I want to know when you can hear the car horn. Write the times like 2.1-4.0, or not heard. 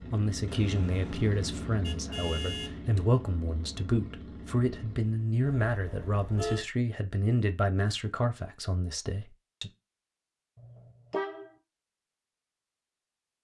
0.5-2.8, 5.4-6.7, 10.6-11.5.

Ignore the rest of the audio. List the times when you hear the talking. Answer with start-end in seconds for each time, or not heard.
0.1-9.7.